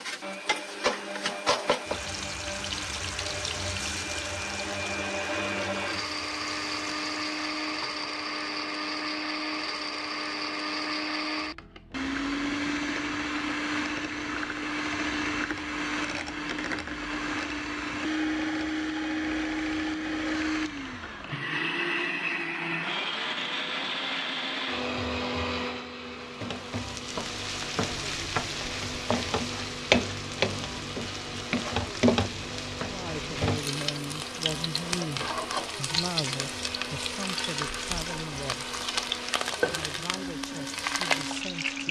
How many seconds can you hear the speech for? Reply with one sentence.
The speech can be heard for 8 seconds in total.